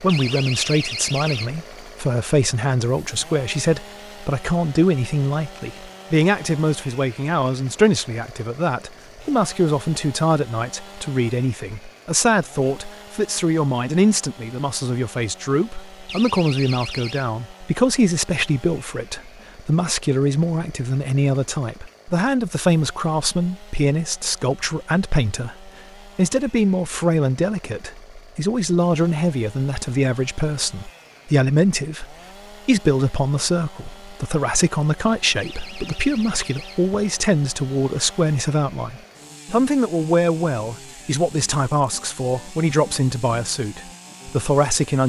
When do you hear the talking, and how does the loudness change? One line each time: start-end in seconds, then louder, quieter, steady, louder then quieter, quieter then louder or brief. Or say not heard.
0.0-45.0 steady.